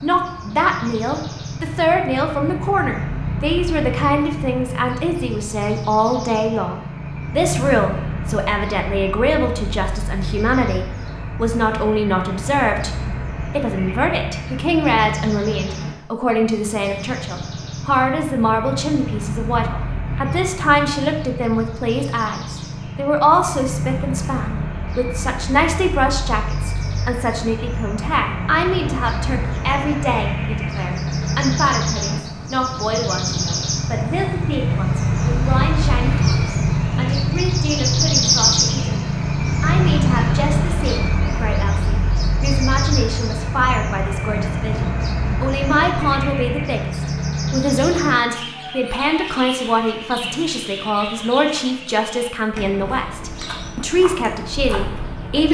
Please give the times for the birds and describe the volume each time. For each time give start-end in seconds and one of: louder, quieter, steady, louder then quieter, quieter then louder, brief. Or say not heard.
0.0-55.4 louder then quieter.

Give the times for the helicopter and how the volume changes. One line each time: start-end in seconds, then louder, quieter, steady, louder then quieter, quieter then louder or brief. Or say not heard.
not heard.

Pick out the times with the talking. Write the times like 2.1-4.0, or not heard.
0.0-55.4.